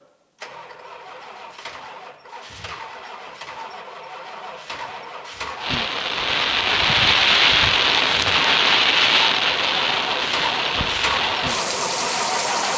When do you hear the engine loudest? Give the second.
12 s.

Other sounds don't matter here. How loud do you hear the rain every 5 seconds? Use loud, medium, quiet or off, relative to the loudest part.
off, loud, medium.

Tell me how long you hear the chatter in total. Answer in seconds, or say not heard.
not heard.